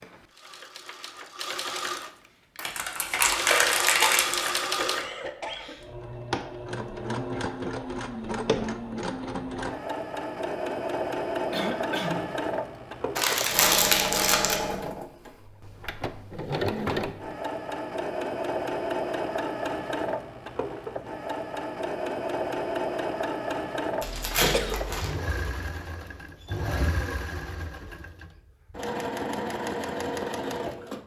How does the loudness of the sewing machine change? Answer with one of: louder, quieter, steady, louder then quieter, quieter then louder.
steady.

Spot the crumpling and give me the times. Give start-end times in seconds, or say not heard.
2.6-4.7, 13.2-14.6, 24.0-25.1.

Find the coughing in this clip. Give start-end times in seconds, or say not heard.
4.8-6.0, 11.5-12.3, 24.1-24.8.